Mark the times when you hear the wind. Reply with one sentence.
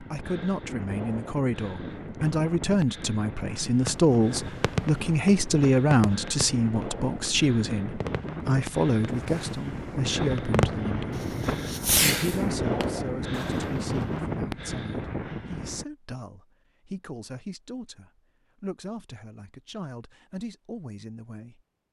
You can hear the wind from 0.0 to 15.8 s.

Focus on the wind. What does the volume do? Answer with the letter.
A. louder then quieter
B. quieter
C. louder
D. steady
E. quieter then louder
C.